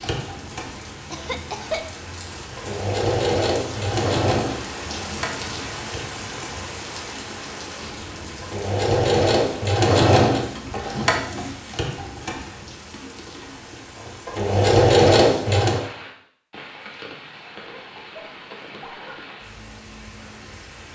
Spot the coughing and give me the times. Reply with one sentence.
You can hear the coughing from 1.1 to 1.9 s and from 17.8 to 19.3 s.